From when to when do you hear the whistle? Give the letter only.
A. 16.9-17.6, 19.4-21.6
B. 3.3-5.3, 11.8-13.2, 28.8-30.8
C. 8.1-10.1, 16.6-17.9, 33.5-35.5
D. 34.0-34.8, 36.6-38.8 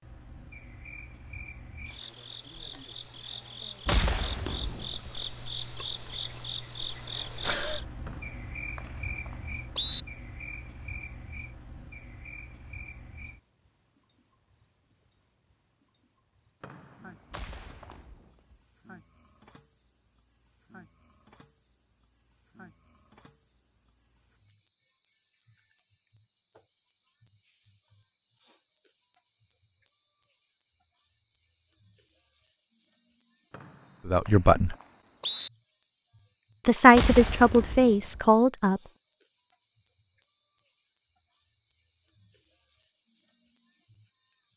C.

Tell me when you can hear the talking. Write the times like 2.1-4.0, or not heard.
34.0-34.8, 36.6-38.8.